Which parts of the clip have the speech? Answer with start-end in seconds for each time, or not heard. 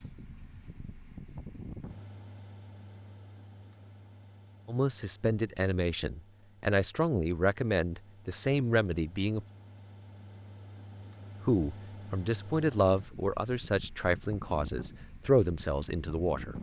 4.7-9.4, 11.4-16.5.